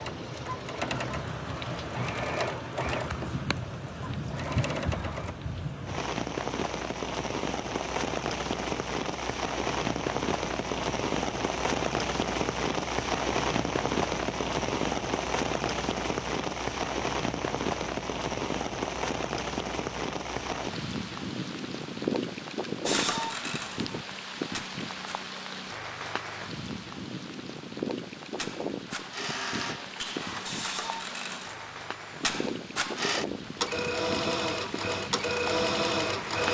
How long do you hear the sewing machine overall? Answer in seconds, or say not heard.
16 s.